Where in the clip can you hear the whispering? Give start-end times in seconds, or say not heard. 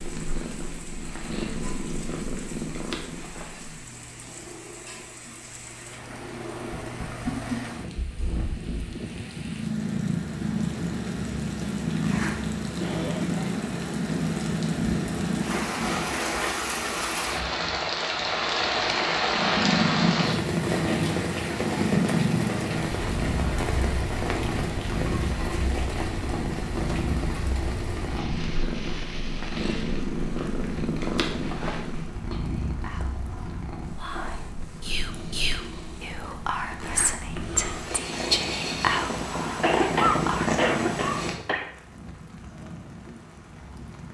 32.1-40.6.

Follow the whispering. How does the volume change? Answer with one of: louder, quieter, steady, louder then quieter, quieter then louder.
louder.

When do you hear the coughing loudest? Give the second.
40 s.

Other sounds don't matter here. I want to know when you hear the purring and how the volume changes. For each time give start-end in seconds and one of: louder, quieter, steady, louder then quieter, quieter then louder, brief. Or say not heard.
0.0-16.1 quieter then louder
19.3-41.4 quieter then louder.